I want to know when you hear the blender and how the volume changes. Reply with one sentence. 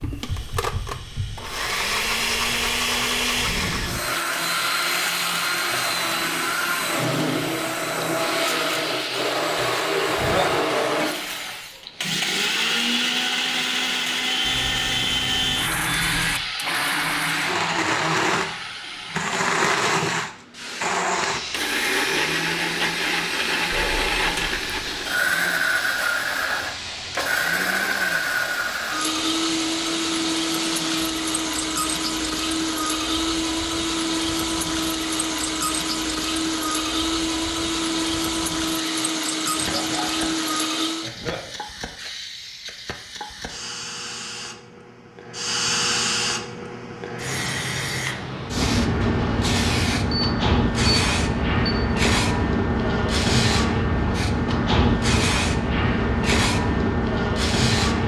You can hear the blender from 0.0 to 41.1 s, at a steady volume.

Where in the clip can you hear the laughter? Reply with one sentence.
The laughter can be heard from 9.6 to 10.7 s and from 39.0 to 41.5 s.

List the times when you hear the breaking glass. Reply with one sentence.
You can't hear the breaking glass here.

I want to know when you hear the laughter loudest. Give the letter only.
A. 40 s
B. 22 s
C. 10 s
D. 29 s
C.